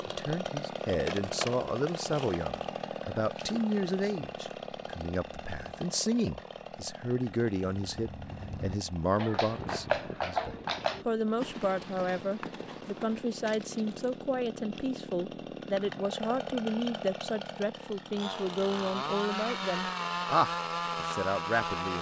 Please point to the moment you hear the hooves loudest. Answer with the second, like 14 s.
10 s.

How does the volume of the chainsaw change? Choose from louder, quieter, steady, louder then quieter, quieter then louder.
quieter then louder.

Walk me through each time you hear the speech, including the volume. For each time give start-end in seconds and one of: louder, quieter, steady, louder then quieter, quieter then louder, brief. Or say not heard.
0.0-21.9 steady.